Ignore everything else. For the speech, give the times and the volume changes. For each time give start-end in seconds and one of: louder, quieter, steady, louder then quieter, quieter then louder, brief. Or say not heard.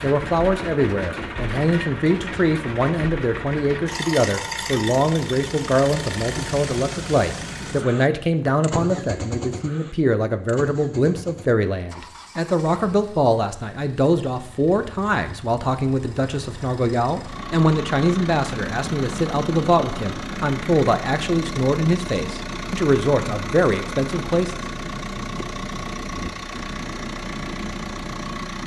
0.0-24.6 steady.